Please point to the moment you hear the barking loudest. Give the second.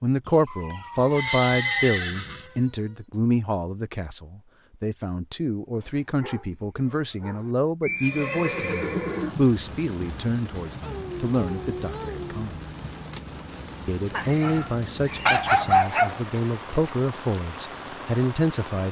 16 s.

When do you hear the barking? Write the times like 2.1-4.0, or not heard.
0.5-3.0, 5.8-7.5, 10.8-12.4, 14.4-16.1.